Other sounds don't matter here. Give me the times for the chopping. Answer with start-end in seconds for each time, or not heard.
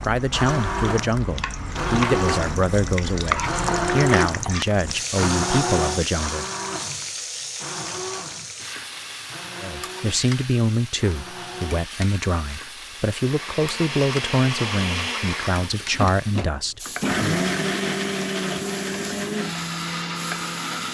not heard.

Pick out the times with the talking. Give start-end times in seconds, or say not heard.
0.0-6.5, 9.6-17.4.